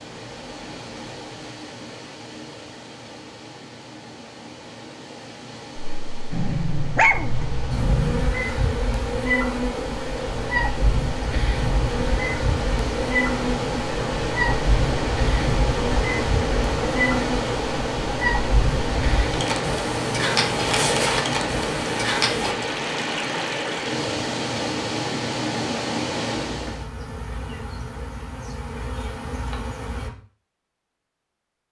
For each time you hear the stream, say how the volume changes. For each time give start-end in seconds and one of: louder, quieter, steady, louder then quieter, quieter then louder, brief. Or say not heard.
0.0-26.9 louder.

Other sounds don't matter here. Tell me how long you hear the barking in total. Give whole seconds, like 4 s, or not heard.
2 s.